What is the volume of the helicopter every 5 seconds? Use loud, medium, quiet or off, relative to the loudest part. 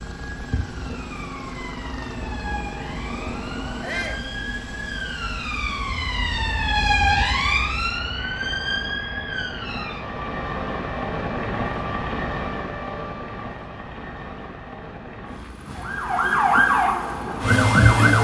medium, medium, loud, medium.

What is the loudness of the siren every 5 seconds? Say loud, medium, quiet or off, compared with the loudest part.
quiet, medium, quiet, loud.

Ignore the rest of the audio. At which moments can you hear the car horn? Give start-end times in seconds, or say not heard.
not heard.